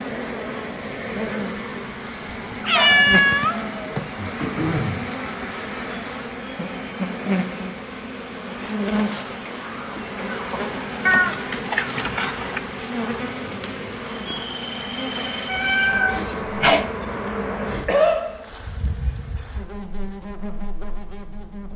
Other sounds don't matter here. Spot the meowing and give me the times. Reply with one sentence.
You can hear the meowing from 2.5 to 4.0 s, from 11.1 to 12.6 s and from 15.4 to 16.9 s.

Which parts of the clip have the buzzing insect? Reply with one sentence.
You can hear the buzzing insect from 0.0 to 21.7 s.